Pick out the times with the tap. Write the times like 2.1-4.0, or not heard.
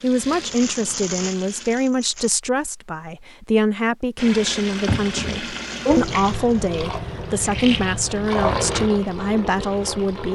0.0-1.8, 4.2-10.2.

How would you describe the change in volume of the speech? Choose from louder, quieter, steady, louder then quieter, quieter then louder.
steady.